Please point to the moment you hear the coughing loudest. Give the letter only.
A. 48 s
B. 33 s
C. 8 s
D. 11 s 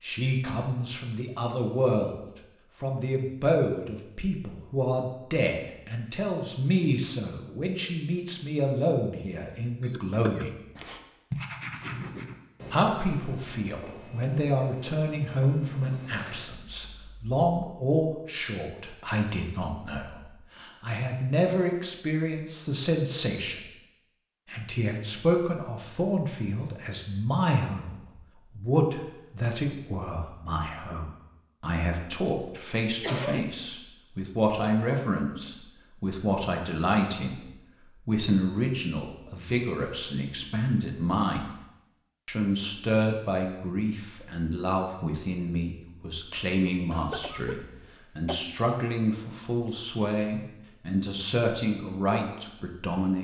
B.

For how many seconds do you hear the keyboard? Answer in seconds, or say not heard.
not heard.